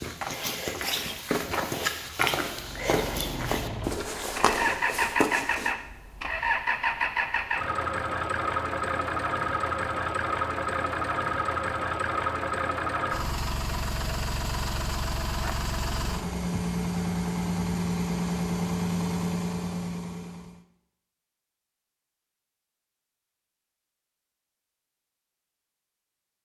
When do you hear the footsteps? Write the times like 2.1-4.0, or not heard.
0.0-5.8.